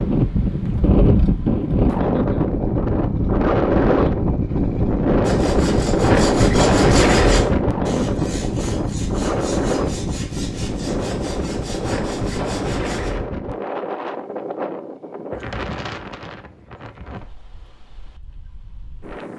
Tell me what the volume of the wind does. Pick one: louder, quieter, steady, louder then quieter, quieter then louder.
quieter.